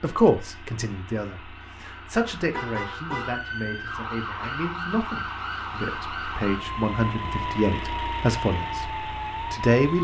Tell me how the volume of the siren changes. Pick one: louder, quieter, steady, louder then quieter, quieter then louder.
louder.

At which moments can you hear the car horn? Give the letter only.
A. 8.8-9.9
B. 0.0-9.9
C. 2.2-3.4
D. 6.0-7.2
C.